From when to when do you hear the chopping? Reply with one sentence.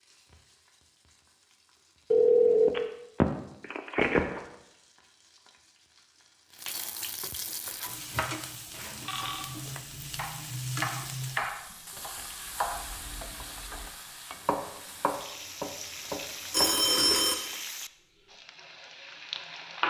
You can hear the chopping from 7.6 to 16.9 s.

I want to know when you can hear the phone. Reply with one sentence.
The phone can be heard from 2.1 to 4.4 s, from 8.7 to 9.4 s and from 16.5 to 17.5 s.